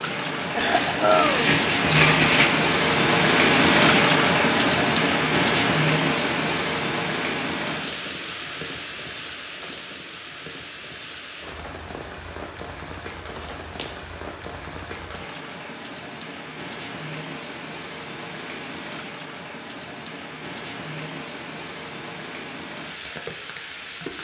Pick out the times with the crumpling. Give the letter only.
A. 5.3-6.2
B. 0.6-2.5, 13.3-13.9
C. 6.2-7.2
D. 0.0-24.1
B.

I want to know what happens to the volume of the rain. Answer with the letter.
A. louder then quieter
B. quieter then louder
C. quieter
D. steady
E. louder
C.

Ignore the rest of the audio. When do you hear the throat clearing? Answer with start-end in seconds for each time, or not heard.
0.6-1.5.